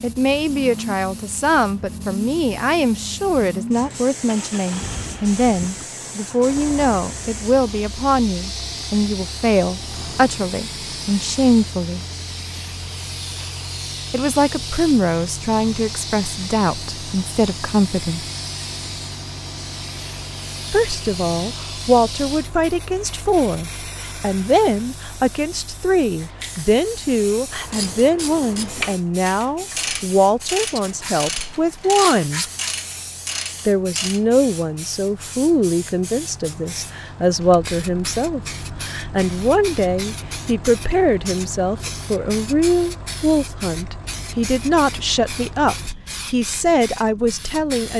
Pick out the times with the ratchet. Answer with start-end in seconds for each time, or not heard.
27.5-34.2.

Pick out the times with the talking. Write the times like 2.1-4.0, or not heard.
0.0-12.0, 14.1-18.2, 20.7-32.5, 33.6-47.9.